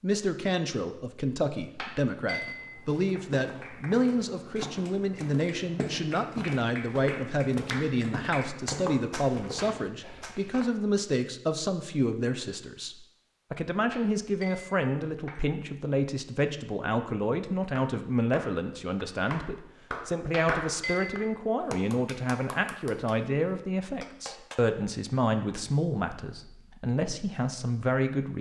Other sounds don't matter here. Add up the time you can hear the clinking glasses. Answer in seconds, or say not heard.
4 s.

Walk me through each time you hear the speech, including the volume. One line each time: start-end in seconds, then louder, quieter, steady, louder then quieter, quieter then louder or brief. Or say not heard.
0.0-28.3 steady.